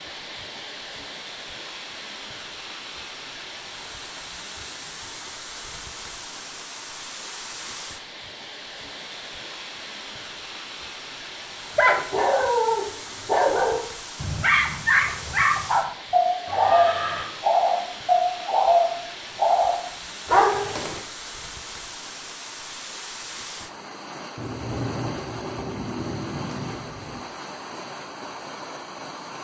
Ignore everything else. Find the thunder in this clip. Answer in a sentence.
You can hear the thunder from 24.4 to 27.2 s.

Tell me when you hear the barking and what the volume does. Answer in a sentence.
You can hear the barking from 11.8 to 21.0 s, at a steady volume.